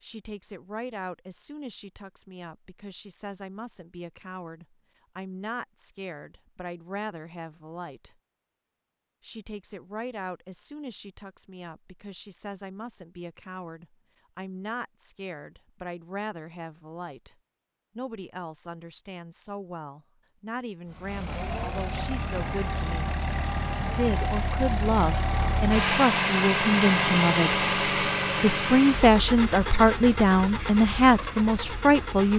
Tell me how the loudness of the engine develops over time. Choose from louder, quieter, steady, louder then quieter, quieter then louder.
louder then quieter.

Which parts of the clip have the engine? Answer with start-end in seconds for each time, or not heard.
20.9-32.3.